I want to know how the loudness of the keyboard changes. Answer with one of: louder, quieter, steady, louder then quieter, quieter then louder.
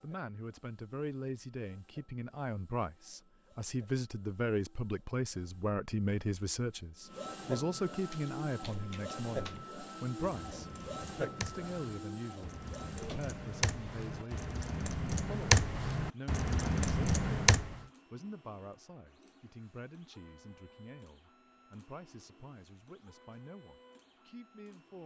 louder.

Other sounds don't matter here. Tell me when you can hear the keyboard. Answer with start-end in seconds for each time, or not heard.
8.1-17.8.